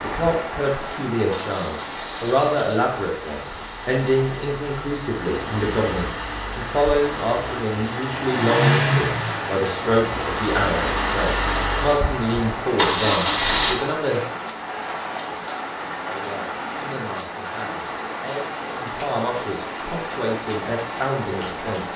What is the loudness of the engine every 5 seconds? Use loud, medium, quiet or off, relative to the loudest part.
quiet, loud, loud, off, off.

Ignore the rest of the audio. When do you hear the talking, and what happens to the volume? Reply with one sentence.
You can hear the talking from 0.0 to 14.2 s, at a steady volume; and from 16.1 to 21.9 s, getting louder.